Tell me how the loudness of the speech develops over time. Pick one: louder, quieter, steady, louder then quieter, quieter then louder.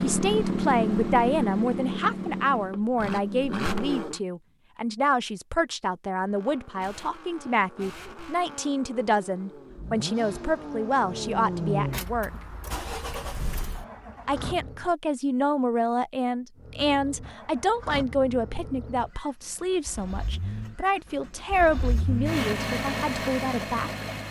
steady.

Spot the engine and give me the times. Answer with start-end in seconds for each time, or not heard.
0.0-4.2, 6.2-14.9, 16.6-24.2.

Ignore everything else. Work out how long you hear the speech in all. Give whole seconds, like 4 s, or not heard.
22 s.